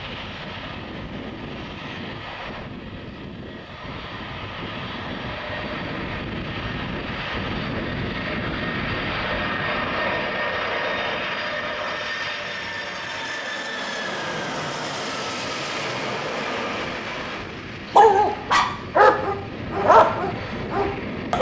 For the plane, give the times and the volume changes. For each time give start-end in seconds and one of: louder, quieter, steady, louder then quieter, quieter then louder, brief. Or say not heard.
0.0-21.3 louder then quieter.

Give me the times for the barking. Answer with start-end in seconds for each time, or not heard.
17.9-21.3.